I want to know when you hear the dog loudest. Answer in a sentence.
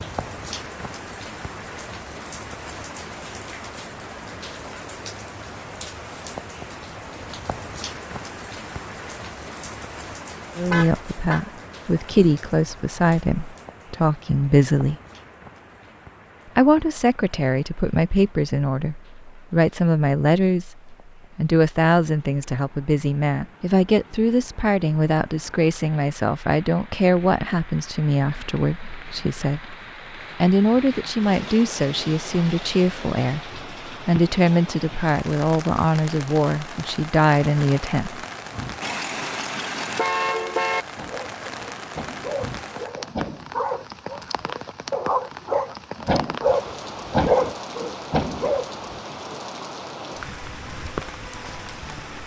The loudest moment of the dog is at 47 seconds.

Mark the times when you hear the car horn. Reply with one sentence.
The car horn can be heard from 10.7 to 11.4 s and from 38.8 to 40.9 s.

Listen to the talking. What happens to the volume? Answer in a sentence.
The volume of the talking stays about the same.